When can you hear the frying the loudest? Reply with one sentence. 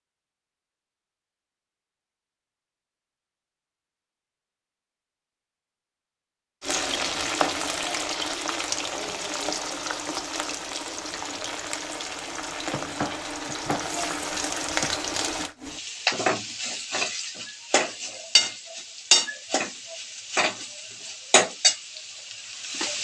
The loudest moment of the frying is at 19 seconds.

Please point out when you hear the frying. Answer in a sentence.
The frying can be heard from 6.6 to 23.0 s.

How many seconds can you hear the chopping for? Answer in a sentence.
The chopping can be heard for 2 seconds in total.